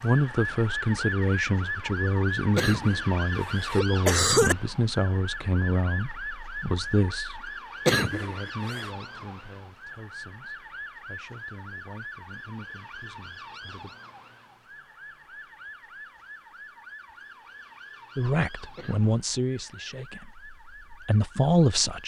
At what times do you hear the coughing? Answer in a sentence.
The coughing can be heard from 2.5 to 4.5 s, from 7.8 to 8.9 s and from 18.8 to 20.1 s.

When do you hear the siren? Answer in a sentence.
You can hear the siren from 0.0 to 22.0 s.